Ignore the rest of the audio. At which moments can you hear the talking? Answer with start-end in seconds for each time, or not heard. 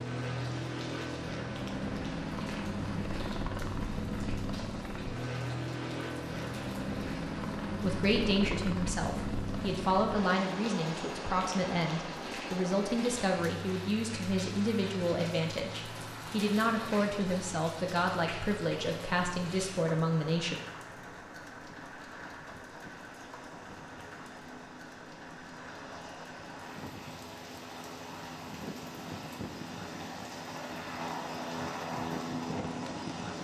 7.8-20.6.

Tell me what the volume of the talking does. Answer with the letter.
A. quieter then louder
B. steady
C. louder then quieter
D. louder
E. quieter
B.